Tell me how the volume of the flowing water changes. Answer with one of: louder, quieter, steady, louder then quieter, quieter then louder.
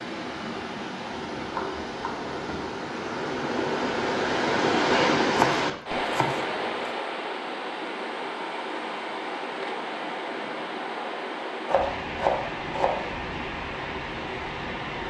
louder then quieter.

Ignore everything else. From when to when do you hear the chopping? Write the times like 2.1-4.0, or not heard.
1.5-2.6, 5.3-6.9, 11.7-13.1.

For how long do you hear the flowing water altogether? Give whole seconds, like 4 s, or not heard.
15 s.